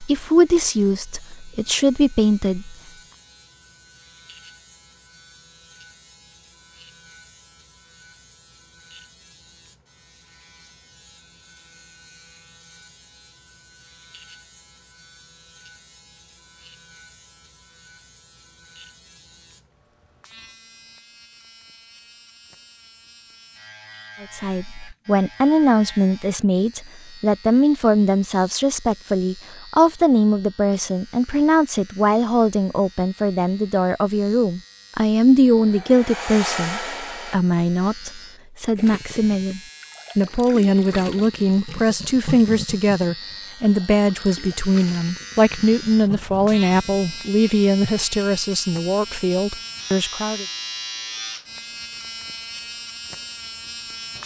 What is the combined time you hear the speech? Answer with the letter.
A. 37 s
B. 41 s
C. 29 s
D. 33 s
C.